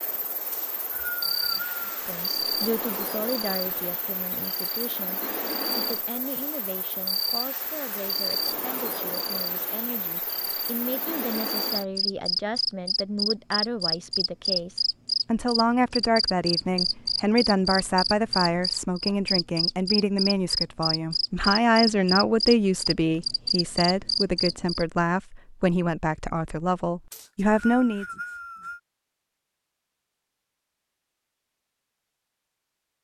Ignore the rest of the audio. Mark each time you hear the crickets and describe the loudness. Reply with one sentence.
The crickets can be heard from 0.0 to 24.9 s, getting louder.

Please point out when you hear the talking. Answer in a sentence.
The talking can be heard from 1.9 to 28.1 s.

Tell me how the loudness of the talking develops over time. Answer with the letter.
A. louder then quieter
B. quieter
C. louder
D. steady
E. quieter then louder
C.